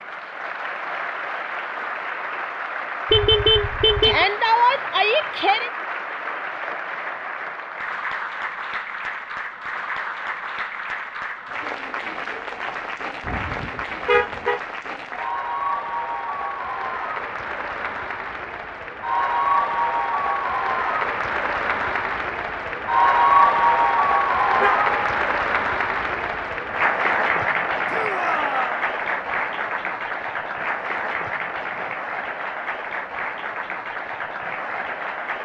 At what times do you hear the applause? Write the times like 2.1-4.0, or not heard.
0.0-35.4.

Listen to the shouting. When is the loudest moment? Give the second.
5 s.